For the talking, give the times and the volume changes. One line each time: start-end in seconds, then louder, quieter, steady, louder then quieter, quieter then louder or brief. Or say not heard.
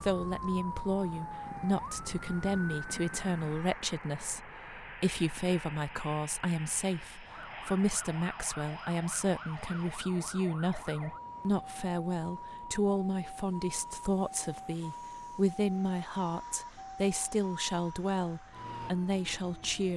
0.0-19.9 steady.